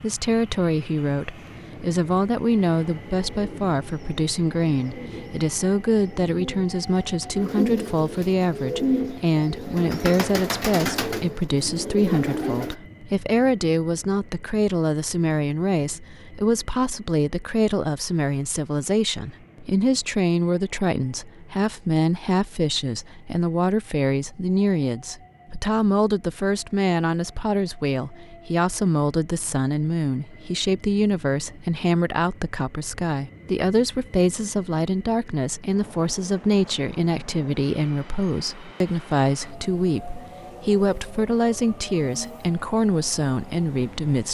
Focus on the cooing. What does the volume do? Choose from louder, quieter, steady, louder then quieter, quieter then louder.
louder.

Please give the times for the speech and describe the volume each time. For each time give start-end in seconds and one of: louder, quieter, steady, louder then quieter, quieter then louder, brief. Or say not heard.
0.0-44.2 steady.